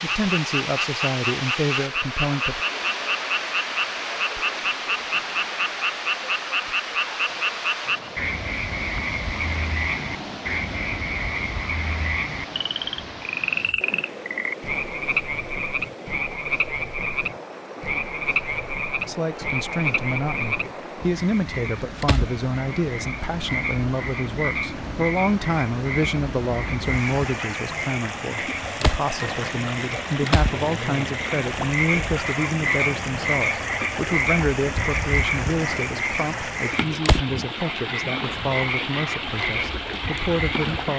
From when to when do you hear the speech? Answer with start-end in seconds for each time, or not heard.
0.0-2.6, 19.1-40.9.